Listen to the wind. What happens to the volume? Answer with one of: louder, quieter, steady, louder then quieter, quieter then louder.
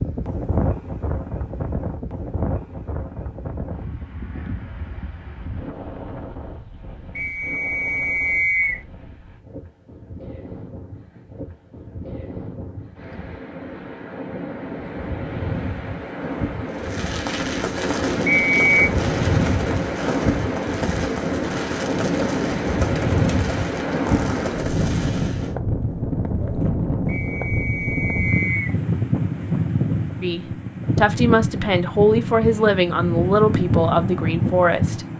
quieter then louder.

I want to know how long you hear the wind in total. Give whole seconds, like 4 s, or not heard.
35 s.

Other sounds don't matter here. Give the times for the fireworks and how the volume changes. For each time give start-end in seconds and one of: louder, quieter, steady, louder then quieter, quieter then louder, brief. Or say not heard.
16.6-25.5 steady.